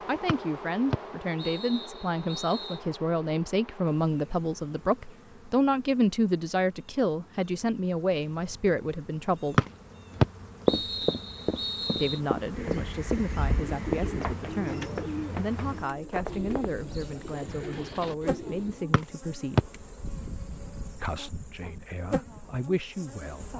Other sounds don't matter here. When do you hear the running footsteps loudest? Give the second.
11 s.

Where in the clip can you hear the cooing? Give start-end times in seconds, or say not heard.
12.5-18.9.